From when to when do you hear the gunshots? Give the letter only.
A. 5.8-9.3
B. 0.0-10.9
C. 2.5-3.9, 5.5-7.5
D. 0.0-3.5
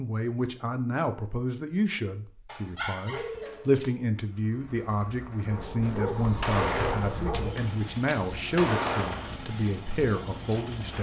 A.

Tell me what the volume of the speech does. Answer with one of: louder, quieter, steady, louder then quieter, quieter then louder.
steady.